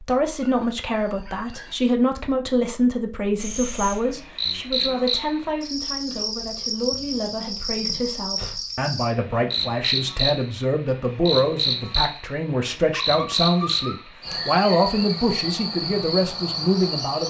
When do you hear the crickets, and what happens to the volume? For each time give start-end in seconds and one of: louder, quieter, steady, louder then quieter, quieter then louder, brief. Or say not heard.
3.4-17.2 steady.